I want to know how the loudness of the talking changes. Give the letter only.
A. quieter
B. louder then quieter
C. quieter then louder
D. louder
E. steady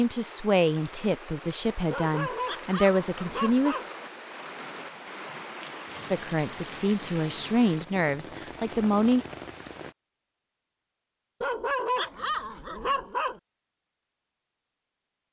E.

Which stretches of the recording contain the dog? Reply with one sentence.
You can hear the dog from 1.9 to 3.9 s and from 11.4 to 13.4 s.